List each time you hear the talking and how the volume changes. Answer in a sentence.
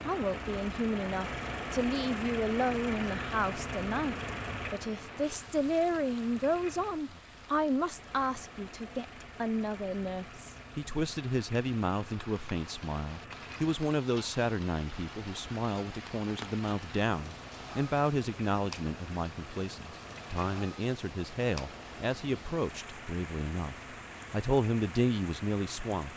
You can hear the talking from 0.1 to 26.1 s, at a steady volume.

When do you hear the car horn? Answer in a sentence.
You can't hear the car horn here.